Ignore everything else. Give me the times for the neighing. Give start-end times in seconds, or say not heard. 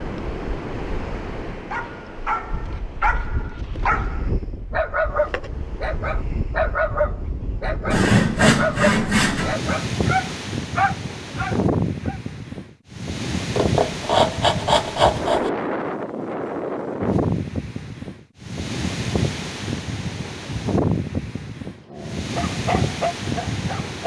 not heard.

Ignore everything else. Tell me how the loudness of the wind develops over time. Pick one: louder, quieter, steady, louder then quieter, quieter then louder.
louder.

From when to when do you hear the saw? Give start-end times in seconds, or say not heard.
7.9-9.6, 13.6-15.5.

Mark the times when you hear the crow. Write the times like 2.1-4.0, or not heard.
not heard.